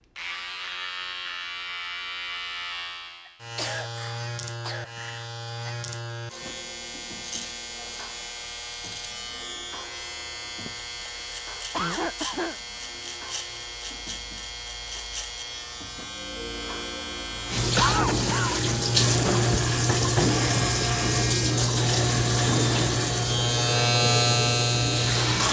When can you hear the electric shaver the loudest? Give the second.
24 s.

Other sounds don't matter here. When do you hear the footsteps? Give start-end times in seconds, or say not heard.
not heard.